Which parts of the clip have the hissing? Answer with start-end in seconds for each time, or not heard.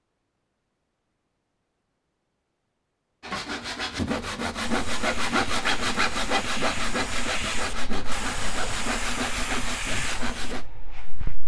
4.6-11.4.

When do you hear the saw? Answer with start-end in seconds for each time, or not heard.
3.2-10.7.